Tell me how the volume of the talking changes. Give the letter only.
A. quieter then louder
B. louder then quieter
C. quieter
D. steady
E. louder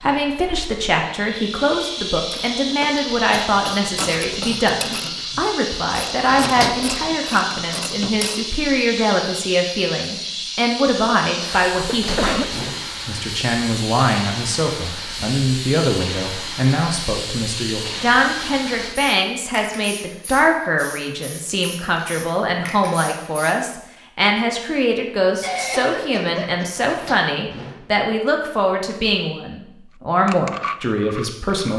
D.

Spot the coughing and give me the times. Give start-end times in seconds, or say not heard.
3.3-4.7, 11.3-12.5, 25.4-26.9.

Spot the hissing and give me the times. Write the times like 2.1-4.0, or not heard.
0.0-23.6.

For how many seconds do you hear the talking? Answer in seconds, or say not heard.
32 s.